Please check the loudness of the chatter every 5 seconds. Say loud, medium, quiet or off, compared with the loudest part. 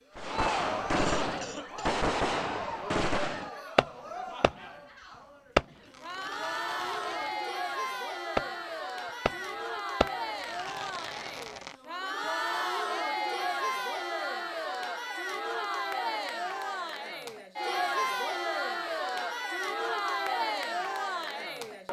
medium, loud, loud, loud, loud.